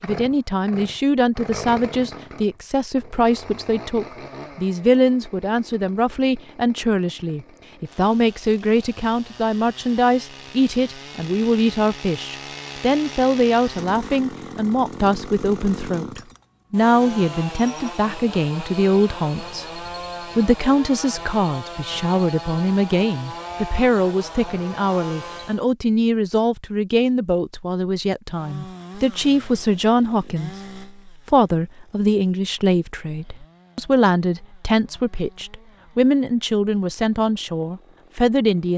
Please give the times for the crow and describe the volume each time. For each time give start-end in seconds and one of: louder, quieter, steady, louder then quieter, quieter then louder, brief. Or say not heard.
not heard.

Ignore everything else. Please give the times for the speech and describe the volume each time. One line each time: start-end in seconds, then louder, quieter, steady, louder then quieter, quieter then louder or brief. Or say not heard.
0.0-38.7 steady.